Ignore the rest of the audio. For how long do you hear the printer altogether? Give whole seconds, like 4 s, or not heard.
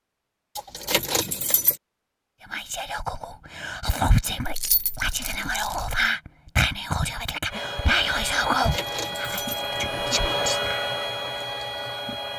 5 s.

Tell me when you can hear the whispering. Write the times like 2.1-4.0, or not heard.
2.5-10.8.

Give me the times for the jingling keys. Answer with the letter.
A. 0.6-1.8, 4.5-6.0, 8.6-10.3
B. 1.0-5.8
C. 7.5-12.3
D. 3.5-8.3
A.